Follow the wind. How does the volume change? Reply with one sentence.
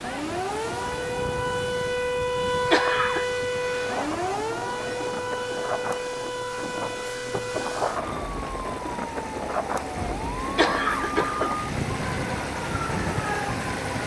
The volume of the wind goes up.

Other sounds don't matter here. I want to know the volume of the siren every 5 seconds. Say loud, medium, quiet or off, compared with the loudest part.
loud, medium, medium.